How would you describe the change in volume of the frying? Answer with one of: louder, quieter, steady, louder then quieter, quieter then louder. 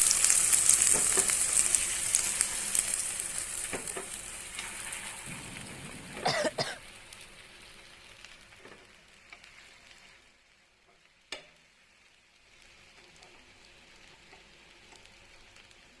quieter.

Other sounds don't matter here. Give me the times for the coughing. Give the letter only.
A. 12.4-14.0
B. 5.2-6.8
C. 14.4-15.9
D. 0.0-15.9
B.